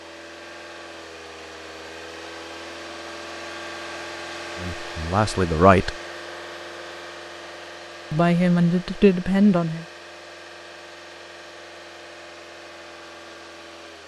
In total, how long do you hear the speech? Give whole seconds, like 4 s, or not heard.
3 s.